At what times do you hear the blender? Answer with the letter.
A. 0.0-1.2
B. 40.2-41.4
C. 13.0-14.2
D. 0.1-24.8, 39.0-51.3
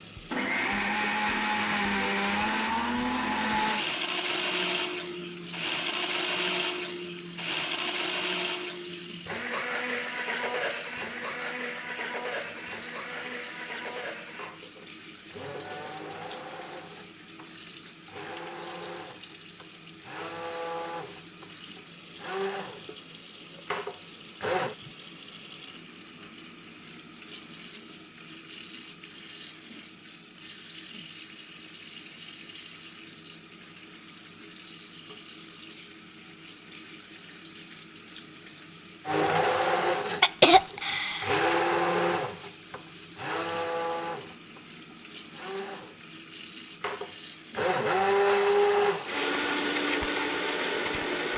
D.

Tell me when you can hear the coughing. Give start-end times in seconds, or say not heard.
40.2-41.4.